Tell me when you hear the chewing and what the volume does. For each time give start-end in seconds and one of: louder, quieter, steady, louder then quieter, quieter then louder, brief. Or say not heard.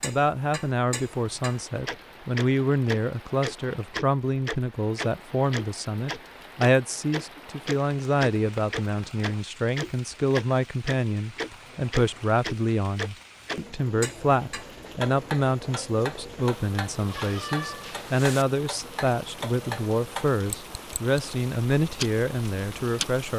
not heard.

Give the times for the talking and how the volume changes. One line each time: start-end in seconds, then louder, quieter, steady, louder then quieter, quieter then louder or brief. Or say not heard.
0.0-23.3 steady.